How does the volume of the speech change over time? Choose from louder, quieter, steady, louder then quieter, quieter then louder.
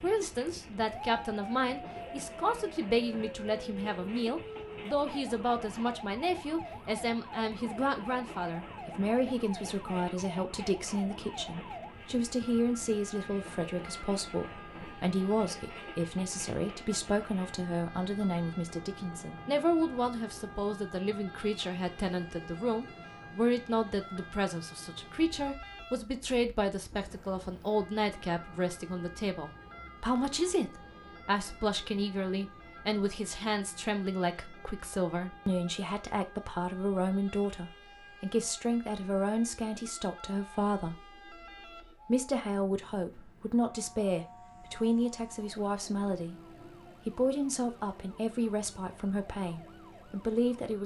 steady.